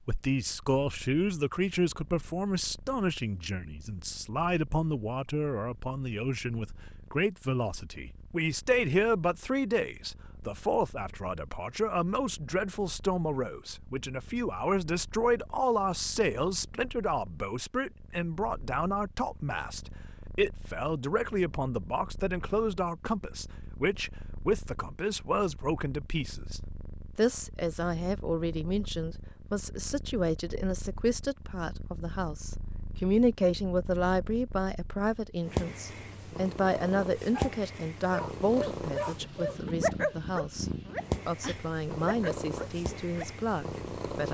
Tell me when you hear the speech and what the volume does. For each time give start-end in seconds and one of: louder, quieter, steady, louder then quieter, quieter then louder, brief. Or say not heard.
0.1-40.6 steady
41.2-44.2 brief.